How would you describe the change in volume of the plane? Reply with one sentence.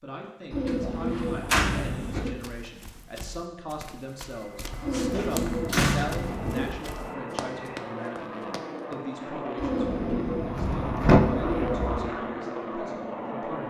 The volume of the plane goes up.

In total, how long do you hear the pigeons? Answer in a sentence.
The pigeons can be heard for 6 seconds in total.